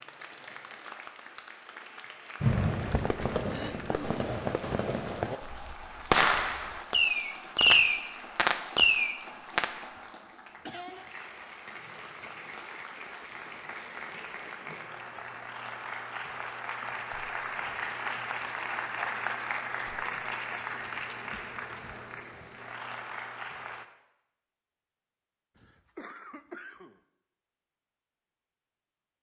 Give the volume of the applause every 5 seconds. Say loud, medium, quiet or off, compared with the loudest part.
medium, medium, medium, loud, loud, off.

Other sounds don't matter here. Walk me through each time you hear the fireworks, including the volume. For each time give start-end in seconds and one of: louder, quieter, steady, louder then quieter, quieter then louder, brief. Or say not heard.
2.4-9.8 louder.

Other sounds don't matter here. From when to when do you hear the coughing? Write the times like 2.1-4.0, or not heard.
3.5-4.2, 10.6-11.0, 25.6-27.0.